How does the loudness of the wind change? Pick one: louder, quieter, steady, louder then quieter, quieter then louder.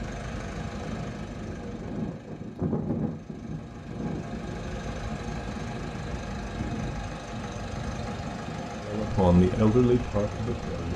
louder then quieter.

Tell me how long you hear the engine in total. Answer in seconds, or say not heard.
11 s.